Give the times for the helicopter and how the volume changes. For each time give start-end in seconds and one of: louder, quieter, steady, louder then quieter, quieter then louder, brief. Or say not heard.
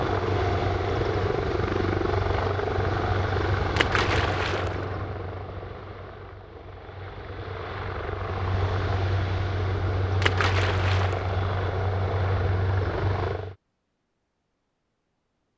0.0-13.6 quieter then louder.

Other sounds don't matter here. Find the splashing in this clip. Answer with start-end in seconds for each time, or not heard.
3.8-4.8, 10.2-11.3.